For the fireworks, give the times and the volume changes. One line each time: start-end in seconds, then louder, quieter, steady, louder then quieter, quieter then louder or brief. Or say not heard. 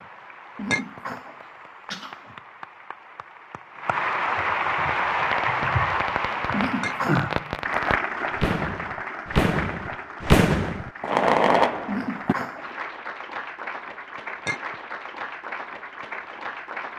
5.1-12.3 louder.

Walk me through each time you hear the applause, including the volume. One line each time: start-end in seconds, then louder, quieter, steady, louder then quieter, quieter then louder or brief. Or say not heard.
0.0-16.9 louder then quieter.